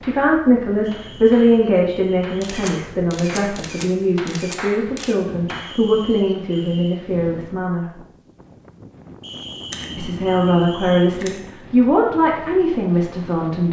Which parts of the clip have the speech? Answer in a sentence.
You can hear the speech from 0.0 to 8.0 s and from 9.9 to 13.6 s.